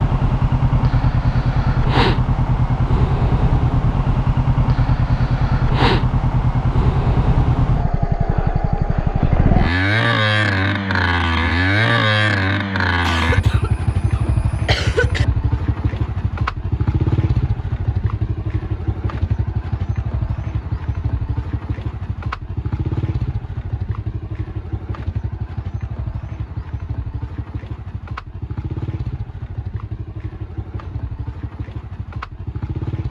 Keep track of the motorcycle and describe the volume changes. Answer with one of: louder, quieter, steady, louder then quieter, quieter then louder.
quieter.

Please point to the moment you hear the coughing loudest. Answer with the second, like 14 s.
15 s.